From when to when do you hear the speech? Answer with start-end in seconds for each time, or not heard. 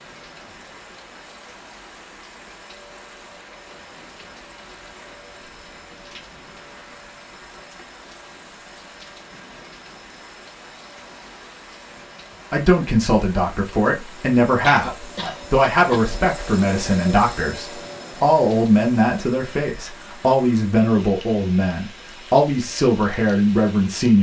12.5-24.1.